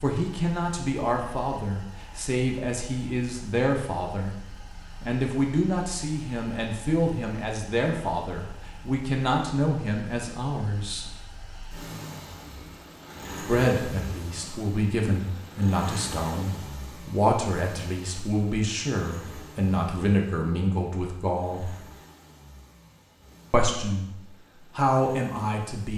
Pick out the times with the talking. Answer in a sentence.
The talking can be heard from 0.0 to 4.3 s, from 5.0 to 11.2 s, from 13.4 to 21.8 s and from 23.5 to 25.9 s.